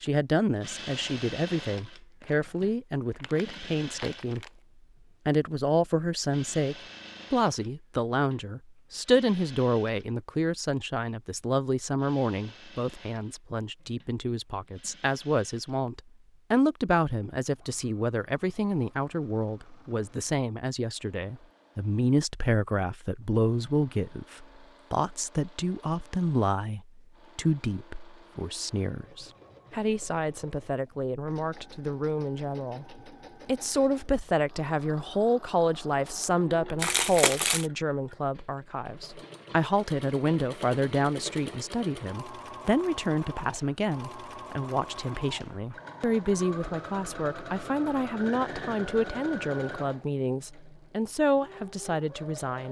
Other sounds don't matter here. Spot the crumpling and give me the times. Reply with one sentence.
The crumpling can be heard from 2.2 to 4.5 s and from 36.8 to 37.7 s.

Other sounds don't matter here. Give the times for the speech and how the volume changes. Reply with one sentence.
You can hear the speech from 0.0 to 4.5 s, at a steady volume; and from 5.2 to 52.6 s, at a steady volume.